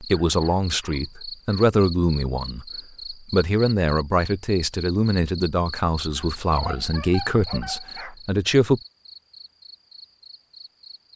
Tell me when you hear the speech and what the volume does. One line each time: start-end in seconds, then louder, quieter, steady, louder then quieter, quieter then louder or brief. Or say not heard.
0.0-8.8 steady.